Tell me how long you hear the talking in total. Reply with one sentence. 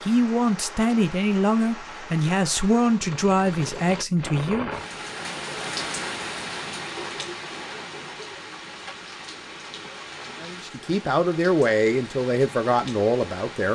The talking can be heard for 8 seconds in total.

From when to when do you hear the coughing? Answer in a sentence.
The coughing can't be heard in this clip.